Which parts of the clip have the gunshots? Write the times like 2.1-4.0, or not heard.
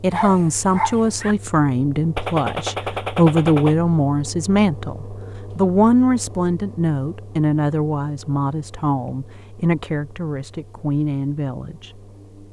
2.1-3.8.